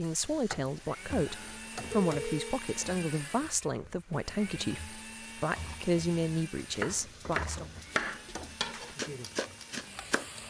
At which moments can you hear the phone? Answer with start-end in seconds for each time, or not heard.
1.2-2.6.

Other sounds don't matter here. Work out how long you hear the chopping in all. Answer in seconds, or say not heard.
4 s.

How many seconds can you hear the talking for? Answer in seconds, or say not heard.
8 s.